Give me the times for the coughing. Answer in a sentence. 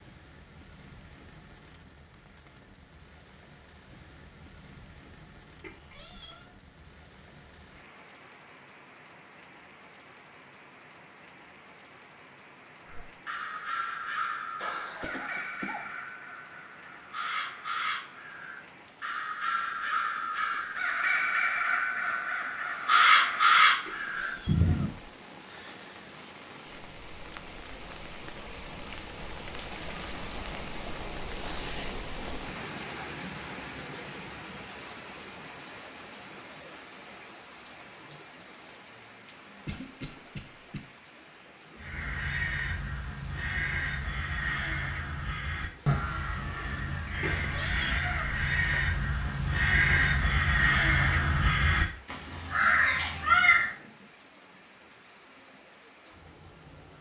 The coughing can be heard from 14.6 to 15.9 s and from 39.6 to 40.8 s.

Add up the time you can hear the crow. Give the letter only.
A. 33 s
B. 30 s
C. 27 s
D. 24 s
D.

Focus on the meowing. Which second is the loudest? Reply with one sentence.
The loudest moment of the meowing is at 48 seconds.